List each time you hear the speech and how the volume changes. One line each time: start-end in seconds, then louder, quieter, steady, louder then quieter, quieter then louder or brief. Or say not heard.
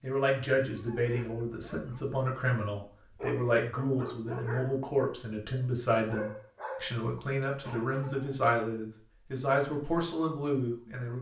0.0-11.1 steady.